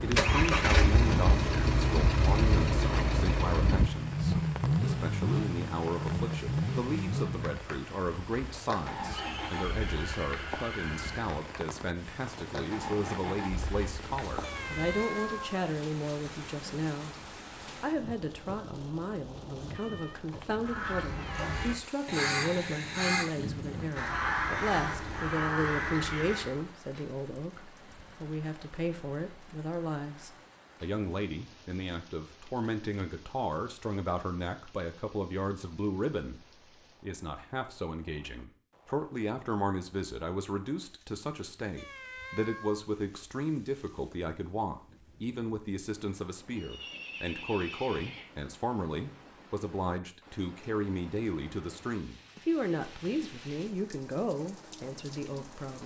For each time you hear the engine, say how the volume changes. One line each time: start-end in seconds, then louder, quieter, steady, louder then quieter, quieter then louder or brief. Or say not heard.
0.0-14.9 quieter.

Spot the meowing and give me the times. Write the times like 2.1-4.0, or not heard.
14.4-15.7, 19.7-21.8, 41.8-42.9.